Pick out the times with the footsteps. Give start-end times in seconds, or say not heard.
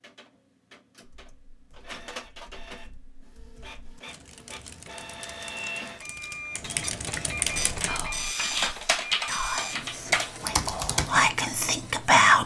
not heard.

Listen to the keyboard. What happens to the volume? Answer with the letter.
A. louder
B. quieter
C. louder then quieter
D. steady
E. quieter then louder
A.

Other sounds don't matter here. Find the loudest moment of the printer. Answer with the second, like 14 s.
8 s.